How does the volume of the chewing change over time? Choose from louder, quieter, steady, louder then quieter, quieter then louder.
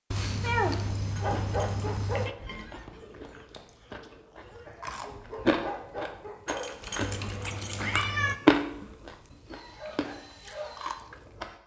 louder then quieter.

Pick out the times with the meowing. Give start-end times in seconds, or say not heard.
0.1-2.4, 7.0-8.3.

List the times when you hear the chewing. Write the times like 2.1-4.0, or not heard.
1.1-11.6.